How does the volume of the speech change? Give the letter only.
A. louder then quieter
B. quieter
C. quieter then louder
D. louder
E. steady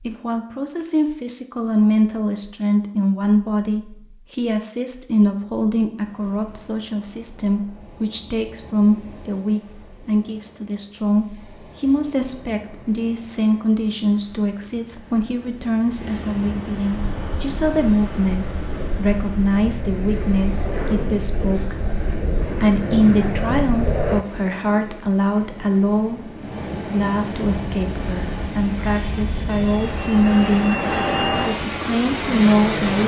E.